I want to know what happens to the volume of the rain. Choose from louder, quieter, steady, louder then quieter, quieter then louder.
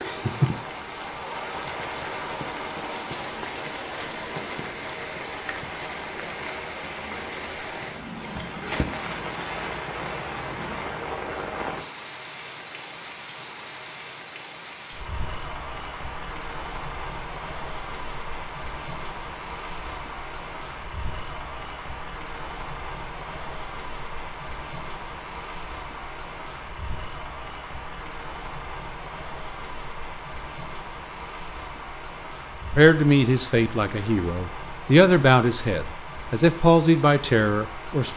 quieter.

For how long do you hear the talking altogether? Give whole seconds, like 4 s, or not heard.
5 s.